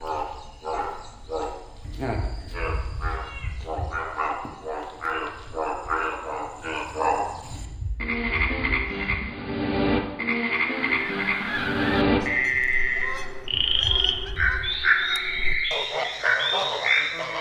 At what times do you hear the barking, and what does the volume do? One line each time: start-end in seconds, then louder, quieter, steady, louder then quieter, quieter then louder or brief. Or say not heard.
not heard.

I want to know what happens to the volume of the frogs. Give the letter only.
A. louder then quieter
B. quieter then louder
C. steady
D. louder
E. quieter
D.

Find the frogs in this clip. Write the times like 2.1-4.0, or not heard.
0.0-17.3.